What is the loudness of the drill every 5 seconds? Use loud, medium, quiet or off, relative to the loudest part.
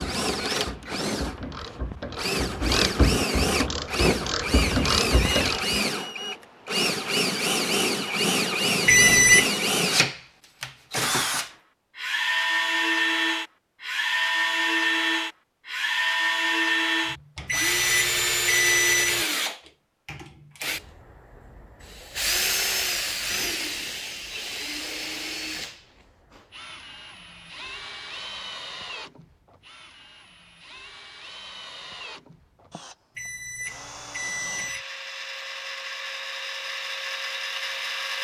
loud, loud, loud, loud, medium, quiet, quiet, medium.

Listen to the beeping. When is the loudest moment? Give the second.
9 s.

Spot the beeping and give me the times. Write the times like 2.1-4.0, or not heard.
8.8-9.4, 17.4-19.2, 33.1-34.9.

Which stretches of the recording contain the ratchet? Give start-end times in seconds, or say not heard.
0.0-5.8.